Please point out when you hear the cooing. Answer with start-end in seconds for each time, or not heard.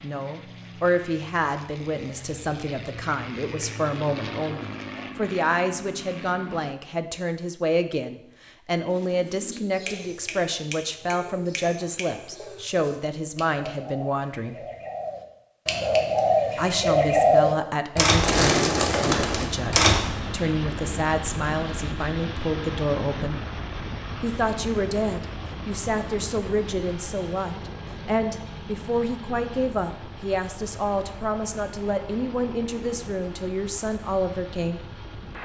8.8-20.0.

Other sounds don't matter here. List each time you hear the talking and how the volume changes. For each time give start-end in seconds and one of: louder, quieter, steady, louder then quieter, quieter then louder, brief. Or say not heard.
0.0-14.7 steady
16.6-23.5 steady
24.2-34.8 steady.